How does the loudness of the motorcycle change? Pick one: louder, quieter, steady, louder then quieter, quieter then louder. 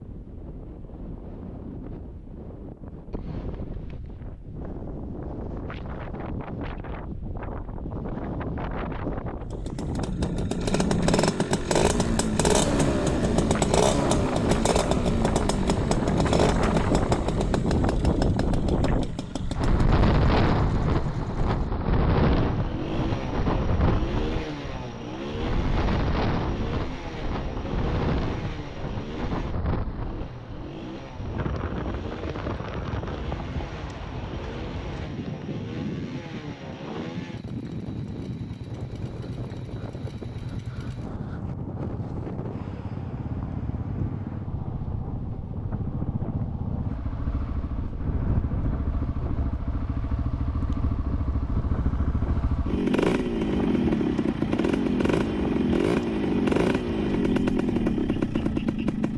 quieter then louder.